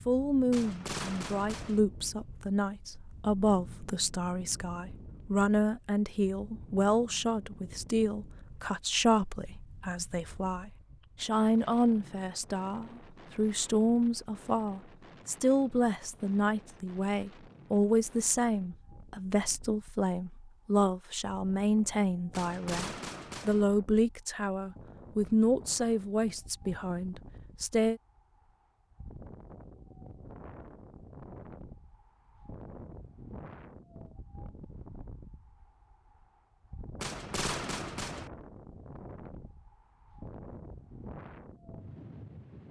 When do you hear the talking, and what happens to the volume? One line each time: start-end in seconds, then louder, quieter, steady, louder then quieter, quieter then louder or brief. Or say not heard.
0.1-28.0 steady.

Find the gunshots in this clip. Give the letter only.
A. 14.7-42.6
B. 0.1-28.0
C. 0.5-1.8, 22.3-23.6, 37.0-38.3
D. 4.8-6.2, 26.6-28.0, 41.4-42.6
C.